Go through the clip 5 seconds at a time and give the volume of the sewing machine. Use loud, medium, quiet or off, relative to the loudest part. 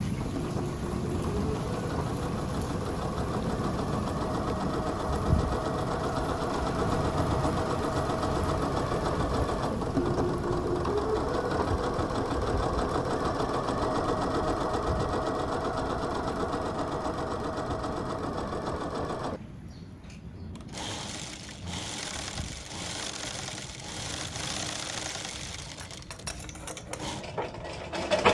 medium, loud, loud, loud, medium, loud.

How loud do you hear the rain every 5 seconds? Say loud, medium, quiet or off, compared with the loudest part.
loud, loud, medium, medium, quiet, quiet.